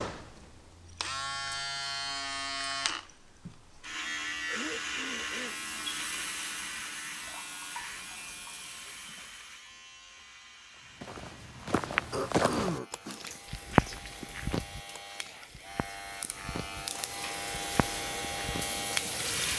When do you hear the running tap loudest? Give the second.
19 s.